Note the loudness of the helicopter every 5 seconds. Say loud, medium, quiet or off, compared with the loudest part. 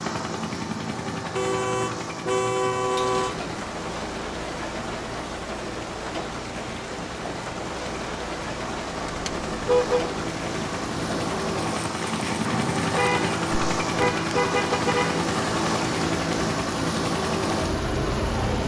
medium, medium, loud, loud.